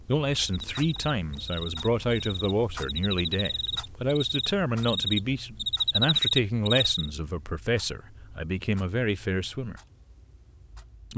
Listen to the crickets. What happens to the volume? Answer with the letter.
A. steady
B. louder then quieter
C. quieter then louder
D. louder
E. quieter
D.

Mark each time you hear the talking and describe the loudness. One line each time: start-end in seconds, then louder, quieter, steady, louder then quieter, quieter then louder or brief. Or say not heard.
0.1-9.8 steady.